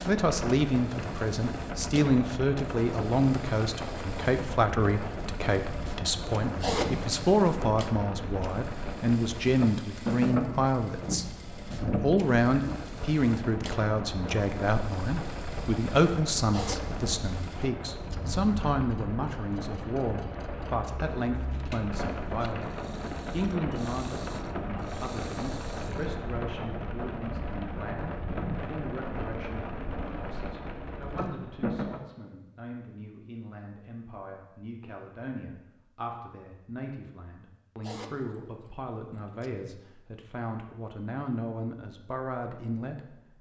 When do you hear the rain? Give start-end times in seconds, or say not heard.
0.0-32.0.